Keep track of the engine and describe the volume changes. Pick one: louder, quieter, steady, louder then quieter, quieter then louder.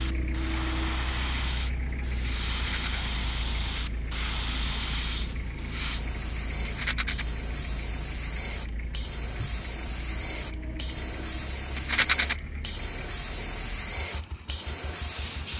quieter.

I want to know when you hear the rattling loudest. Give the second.
12 s.